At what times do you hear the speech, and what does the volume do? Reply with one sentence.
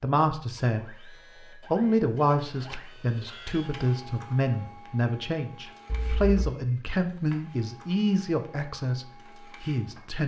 You can hear the speech briefly from 0.0 to 1.1 s; and from 1.7 to 10.2 s, at a steady volume.